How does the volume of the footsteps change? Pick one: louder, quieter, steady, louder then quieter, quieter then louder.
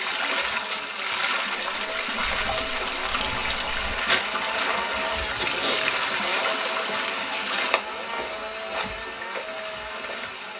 louder then quieter.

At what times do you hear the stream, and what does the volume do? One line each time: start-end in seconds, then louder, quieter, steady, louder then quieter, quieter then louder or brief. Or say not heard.
0.0-10.5 quieter.